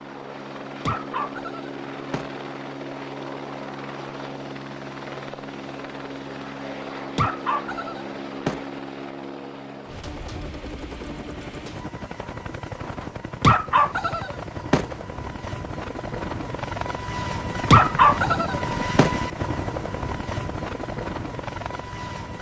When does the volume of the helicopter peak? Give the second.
19 s.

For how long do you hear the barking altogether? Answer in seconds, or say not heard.
6 s.